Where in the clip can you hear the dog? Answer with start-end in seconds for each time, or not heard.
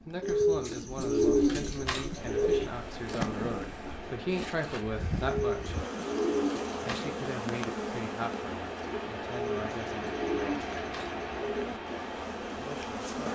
not heard.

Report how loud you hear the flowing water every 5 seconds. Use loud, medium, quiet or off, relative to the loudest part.
medium, loud, loud.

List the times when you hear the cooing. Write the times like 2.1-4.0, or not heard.
0.2-2.7, 5.2-7.2, 9.4-11.8.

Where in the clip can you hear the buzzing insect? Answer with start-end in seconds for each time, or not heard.
0.0-13.2.